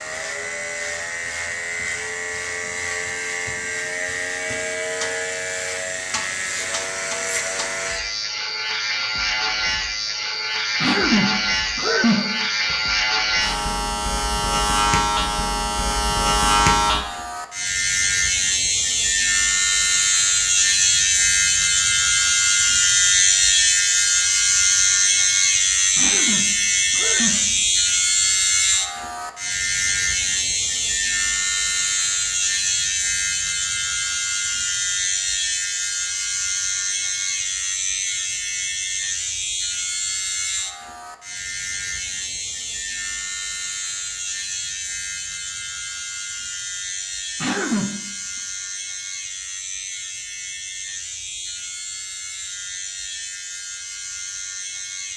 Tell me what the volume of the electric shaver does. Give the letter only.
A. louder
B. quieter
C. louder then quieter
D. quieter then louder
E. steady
C.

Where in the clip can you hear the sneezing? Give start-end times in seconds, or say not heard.
10.8-12.8, 25.9-27.4, 47.4-48.0.